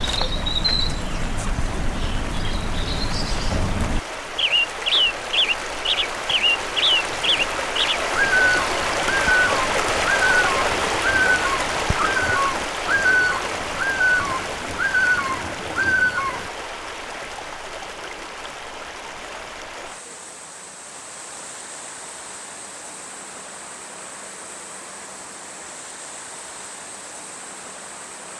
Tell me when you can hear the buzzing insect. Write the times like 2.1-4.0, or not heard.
not heard.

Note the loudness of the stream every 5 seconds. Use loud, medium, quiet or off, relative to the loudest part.
medium, loud, loud, medium, quiet, quiet.